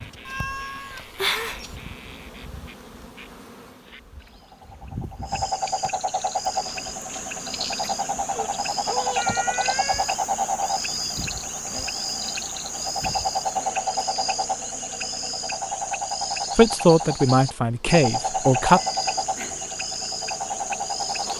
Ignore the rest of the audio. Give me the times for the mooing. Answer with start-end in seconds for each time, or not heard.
not heard.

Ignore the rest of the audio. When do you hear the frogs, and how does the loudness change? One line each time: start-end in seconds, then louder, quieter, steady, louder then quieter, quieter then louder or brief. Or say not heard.
0.0-21.3 louder.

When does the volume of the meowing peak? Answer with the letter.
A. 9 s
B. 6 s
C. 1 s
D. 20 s
C.